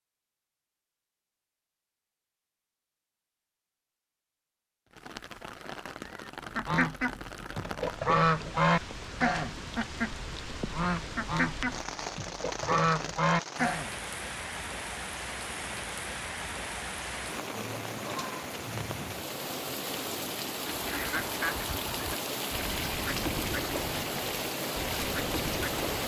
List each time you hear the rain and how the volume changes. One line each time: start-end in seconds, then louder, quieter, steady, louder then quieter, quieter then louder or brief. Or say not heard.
4.9-26.0 louder.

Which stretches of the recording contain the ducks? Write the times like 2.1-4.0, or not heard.
6.5-13.9, 20.6-26.0.